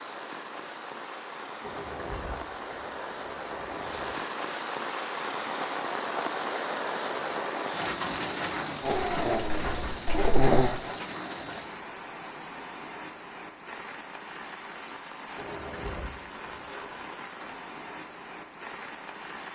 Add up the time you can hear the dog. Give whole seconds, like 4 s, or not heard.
2 s.